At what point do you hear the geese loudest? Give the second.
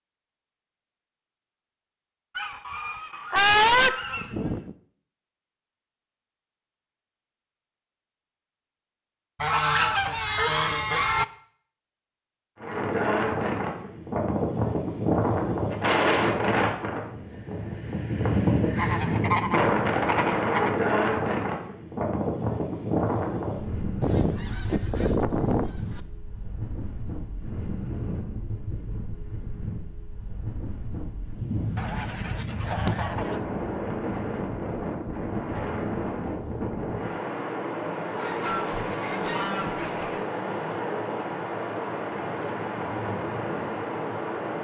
4 s.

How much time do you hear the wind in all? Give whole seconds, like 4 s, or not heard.
32 s.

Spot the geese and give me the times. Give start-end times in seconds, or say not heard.
2.4-4.8, 9.4-11.2, 18.8-20.7, 24.0-26.0, 31.8-33.4, 38.1-40.2.